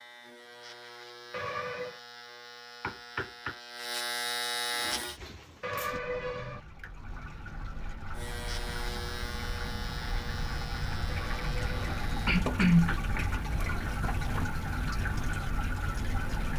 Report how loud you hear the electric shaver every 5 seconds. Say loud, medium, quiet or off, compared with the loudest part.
loud, loud, medium, off.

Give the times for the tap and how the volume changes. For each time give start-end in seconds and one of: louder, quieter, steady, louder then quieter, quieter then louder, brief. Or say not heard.
4.7-16.5 louder.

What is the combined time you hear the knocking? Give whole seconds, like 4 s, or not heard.
2 s.